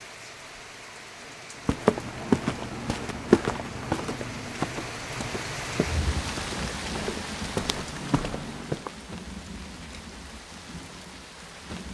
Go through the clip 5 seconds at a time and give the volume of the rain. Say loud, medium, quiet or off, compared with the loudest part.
medium, loud, medium.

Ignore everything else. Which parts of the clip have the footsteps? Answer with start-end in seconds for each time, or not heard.
1.6-8.9.